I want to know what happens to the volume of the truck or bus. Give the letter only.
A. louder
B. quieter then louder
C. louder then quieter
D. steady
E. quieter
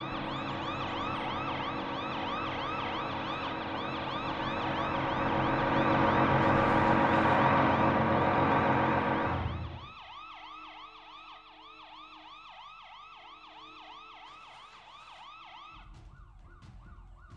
A.